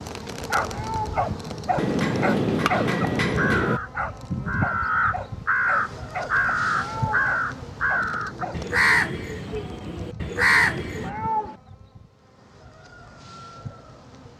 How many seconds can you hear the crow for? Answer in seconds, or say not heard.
8 s.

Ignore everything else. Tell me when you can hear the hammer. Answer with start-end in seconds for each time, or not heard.
1.8-3.8.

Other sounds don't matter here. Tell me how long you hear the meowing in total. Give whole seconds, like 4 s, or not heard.
3 s.